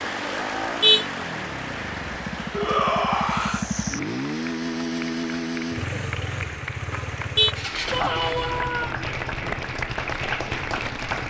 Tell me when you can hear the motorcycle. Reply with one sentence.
The motorcycle can be heard from 0.0 to 11.2 s.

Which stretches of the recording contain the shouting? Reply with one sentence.
The shouting can be heard from 2.5 to 3.7 s and from 7.9 to 8.9 s.